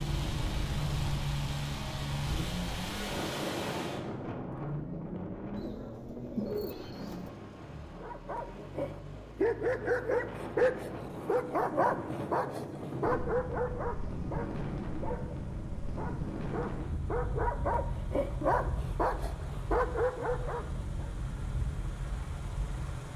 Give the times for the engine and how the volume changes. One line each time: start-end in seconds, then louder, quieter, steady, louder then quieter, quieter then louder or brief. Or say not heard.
0.0-23.1 quieter then louder.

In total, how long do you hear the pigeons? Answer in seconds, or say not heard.
2 s.